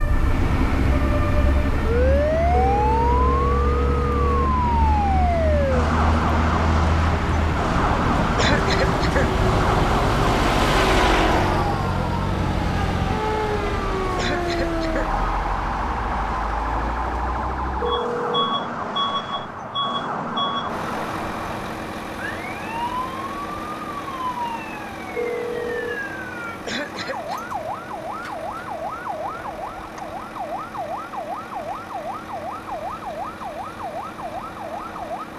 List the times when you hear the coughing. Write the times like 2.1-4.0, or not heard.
8.3-9.4, 14.2-15.2, 26.6-27.4.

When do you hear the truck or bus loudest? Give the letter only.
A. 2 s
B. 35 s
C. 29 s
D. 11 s
D.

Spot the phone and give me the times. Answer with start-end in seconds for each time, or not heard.
2.5-4.5, 17.8-18.5, 25.1-26.0.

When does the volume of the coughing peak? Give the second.
9 s.